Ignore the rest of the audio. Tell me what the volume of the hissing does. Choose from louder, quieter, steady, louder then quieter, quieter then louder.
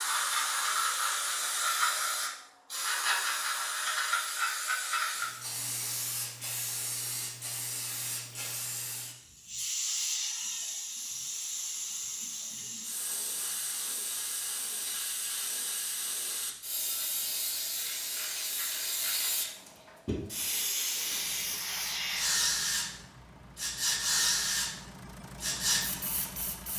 quieter then louder.